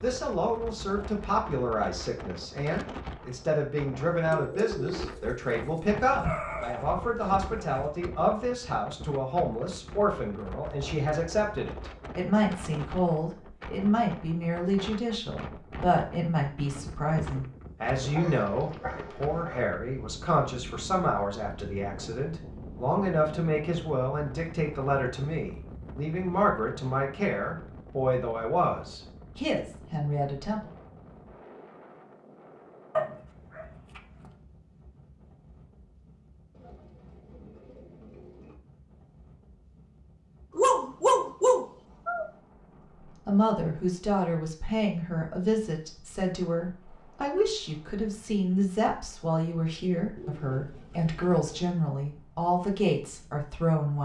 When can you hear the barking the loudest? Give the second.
41 s.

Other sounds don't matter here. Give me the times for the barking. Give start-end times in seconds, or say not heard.
6.0-8.0, 18.1-19.6, 33.0-34.3, 40.5-42.2.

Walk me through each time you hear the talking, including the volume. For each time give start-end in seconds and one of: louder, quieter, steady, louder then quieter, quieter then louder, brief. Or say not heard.
0.0-30.7 steady
43.0-54.0 steady.